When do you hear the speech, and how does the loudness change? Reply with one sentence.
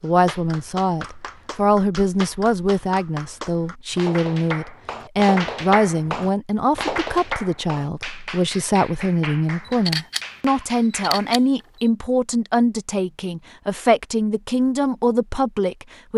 You can hear the speech from 0.0 to 16.1 s, at a steady volume.